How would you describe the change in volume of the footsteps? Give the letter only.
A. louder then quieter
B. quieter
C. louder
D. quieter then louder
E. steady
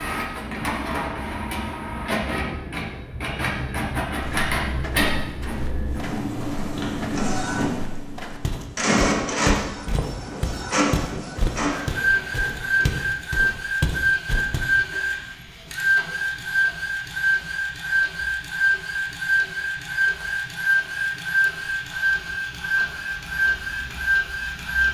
C.